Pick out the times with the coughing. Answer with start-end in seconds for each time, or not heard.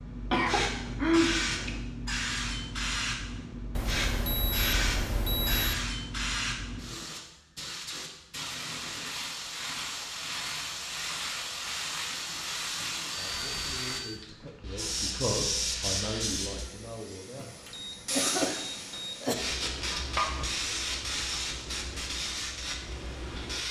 0.3-1.8, 17.4-19.4.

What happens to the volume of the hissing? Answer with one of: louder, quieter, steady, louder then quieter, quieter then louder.
steady.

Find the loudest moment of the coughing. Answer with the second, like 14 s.
1 s.